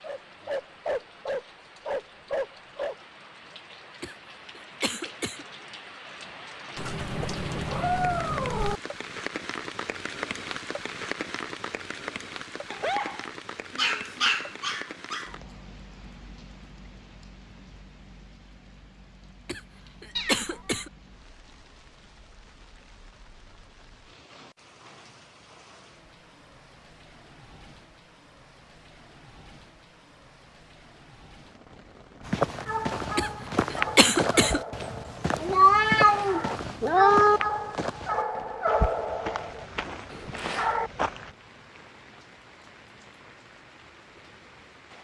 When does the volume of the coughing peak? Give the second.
34 s.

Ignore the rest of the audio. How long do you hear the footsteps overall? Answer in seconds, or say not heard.
9 s.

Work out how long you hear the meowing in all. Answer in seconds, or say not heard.
5 s.